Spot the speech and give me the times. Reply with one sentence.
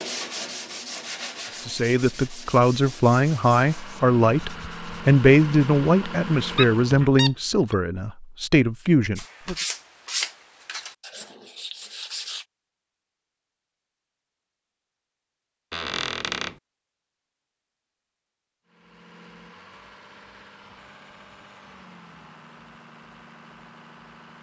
The speech can be heard from 1.6 to 9.6 s.